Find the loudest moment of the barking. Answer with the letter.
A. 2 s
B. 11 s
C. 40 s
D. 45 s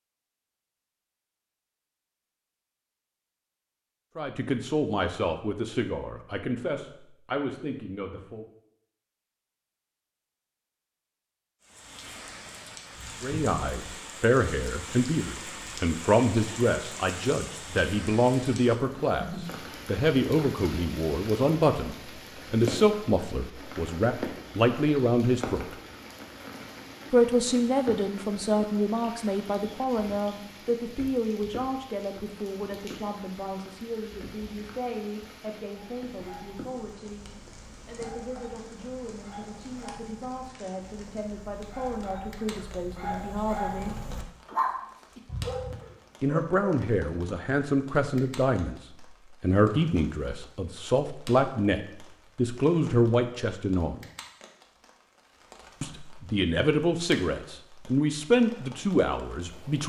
D.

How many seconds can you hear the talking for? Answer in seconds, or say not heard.
46 s.